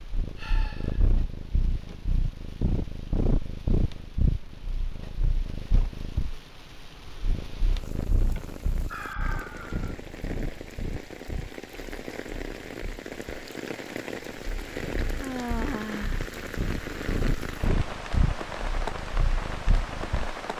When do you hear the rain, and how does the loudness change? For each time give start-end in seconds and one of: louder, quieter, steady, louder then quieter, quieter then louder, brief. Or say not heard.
0.0-20.5 louder.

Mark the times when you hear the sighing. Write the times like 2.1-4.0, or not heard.
0.3-1.1, 8.3-9.9, 15.2-16.2.